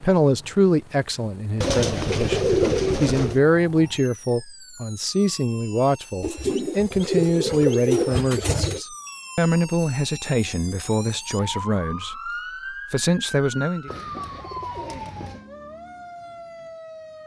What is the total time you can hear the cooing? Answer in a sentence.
You can hear the cooing for 6 seconds altogether.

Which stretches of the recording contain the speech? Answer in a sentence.
The speech can be heard from 0.0 to 12.3 s and from 12.9 to 13.9 s.